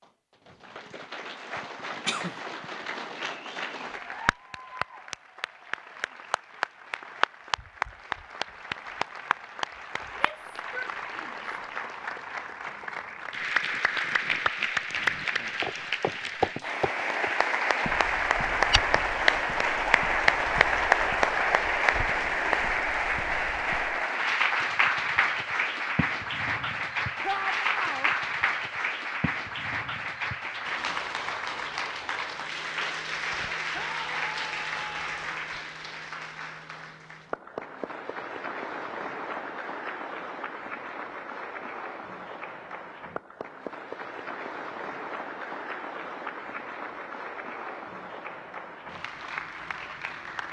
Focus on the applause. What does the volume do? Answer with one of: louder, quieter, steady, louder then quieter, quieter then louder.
louder then quieter.